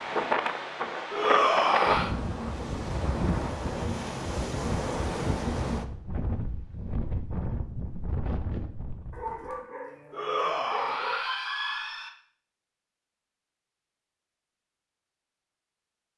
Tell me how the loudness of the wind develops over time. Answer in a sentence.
The loudness of the wind goes down.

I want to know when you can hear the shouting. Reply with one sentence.
The shouting can be heard from 1.1 to 2.1 s and from 10.1 to 12.1 s.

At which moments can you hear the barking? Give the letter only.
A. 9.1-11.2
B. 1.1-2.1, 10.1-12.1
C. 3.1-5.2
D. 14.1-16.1
A.